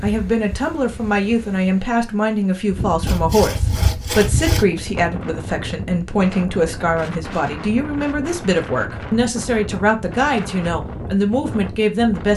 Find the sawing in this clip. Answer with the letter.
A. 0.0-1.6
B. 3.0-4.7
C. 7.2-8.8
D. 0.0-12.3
B.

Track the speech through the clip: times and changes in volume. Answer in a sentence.
The speech can be heard from 0.0 to 12.3 s, at a steady volume.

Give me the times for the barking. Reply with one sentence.
You can't hear the barking here.